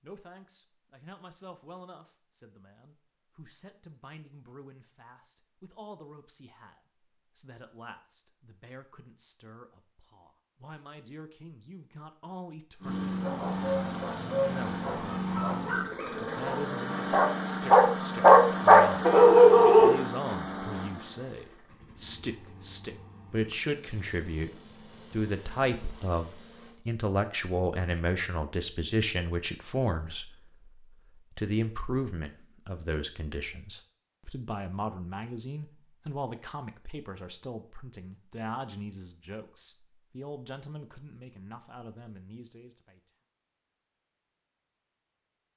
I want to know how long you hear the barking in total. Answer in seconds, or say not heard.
7 s.